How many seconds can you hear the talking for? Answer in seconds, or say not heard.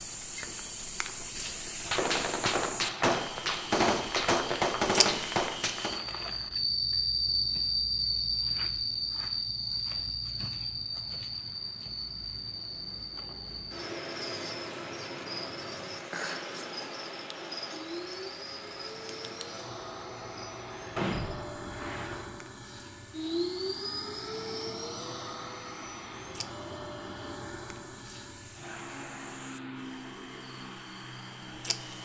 not heard.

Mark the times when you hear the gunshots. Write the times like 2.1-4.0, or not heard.
1.9-6.0, 20.9-22.2.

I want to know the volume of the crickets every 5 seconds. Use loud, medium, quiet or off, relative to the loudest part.
medium, loud, medium, medium, quiet, quiet, quiet.